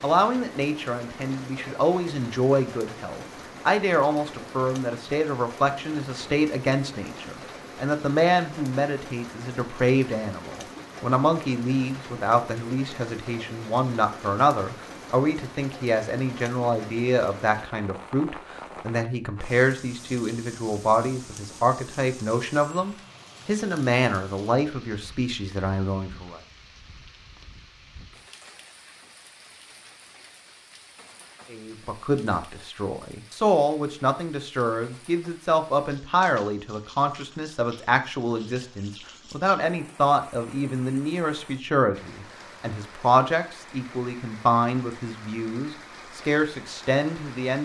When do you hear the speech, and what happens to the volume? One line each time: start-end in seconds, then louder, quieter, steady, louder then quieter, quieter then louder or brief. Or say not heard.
0.0-26.4 steady
31.5-47.6 steady.